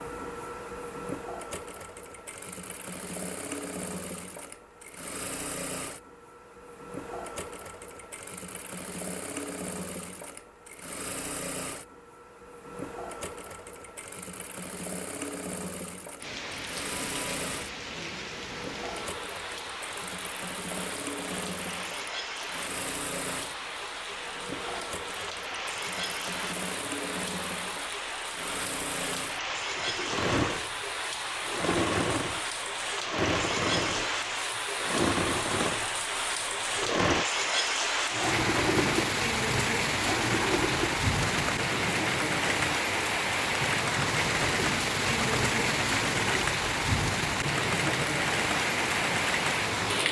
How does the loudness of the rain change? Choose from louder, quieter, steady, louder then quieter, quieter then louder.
louder.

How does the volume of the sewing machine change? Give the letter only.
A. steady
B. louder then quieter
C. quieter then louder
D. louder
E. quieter
D.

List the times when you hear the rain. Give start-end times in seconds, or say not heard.
16.2-50.0.